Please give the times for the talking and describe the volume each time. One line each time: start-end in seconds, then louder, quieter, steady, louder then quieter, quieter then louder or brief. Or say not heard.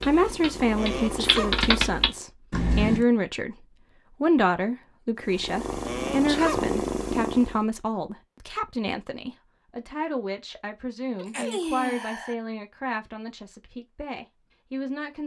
0.1-15.2 quieter.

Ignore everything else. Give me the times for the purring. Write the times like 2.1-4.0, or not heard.
0.0-2.2, 5.2-7.7.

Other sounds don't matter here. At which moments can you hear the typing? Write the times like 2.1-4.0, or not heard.
0.0-3.0.